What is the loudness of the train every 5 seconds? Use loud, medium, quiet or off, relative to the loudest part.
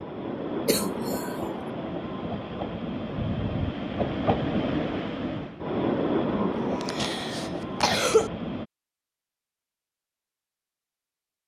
loud, loud, off.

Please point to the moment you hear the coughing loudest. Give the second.
8 s.